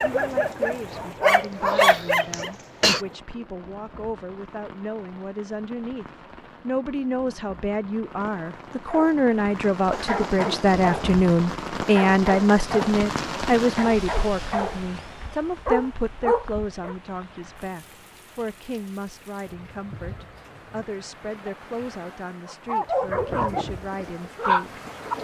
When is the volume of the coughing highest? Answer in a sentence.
The loudest moment of the coughing is at 3 seconds.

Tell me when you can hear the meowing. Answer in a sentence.
You can't hear the meowing here.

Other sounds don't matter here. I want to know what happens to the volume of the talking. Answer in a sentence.
The loudness of the talking goes up, then down.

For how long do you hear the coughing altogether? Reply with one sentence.
You can hear the coughing for 2 seconds altogether.